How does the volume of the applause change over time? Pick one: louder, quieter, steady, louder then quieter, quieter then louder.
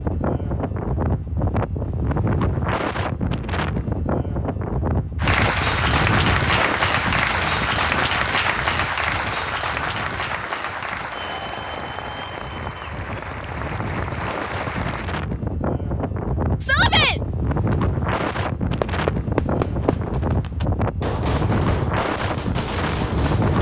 quieter.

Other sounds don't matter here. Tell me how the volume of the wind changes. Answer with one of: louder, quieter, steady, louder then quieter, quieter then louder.
quieter then louder.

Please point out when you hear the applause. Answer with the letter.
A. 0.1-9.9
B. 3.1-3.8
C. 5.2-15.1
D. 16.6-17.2
C.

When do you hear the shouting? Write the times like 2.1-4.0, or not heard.
16.6-17.2.